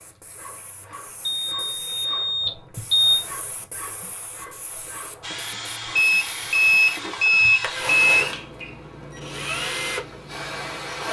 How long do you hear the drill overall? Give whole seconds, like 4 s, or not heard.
6 s.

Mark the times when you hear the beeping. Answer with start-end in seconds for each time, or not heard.
1.2-3.2, 6.0-8.4.